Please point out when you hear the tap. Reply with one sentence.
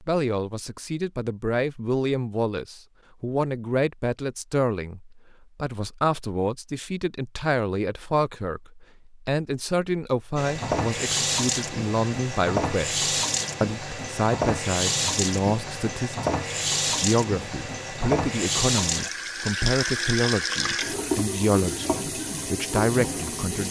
The tap can be heard from 10.3 to 23.6 s.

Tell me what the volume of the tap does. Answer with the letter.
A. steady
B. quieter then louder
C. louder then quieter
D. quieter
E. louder
A.